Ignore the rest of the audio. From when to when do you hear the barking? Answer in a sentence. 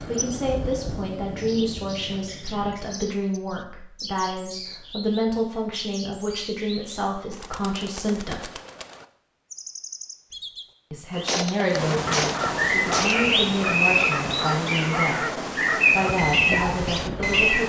The barking can be heard from 11.9 to 17.6 s.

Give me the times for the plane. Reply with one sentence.
You can hear the plane from 0.0 to 2.9 s.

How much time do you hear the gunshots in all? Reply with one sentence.
The gunshots can be heard for 2 seconds in total.